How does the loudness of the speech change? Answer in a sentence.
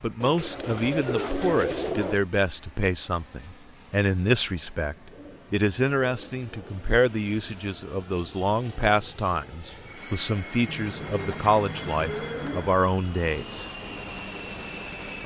The volume of the speech stays about the same.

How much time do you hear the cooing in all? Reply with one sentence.
You can hear the cooing for 6 seconds altogether.